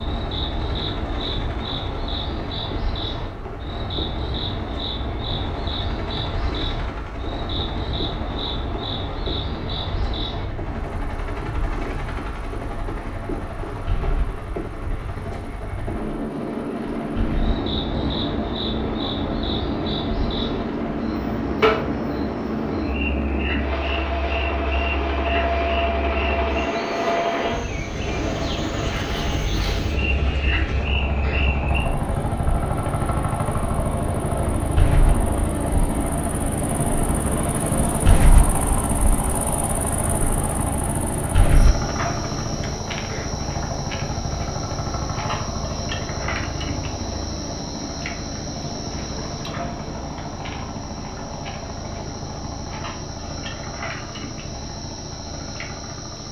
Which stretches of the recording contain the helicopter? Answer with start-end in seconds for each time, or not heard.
0.0-56.2.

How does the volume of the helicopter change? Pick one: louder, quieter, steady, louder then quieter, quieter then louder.
louder then quieter.